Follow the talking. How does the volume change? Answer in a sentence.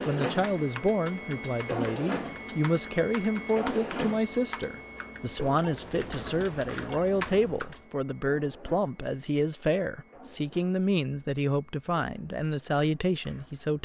The volume of the talking stays about the same.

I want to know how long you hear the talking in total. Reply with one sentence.
You can hear the talking for 14 seconds altogether.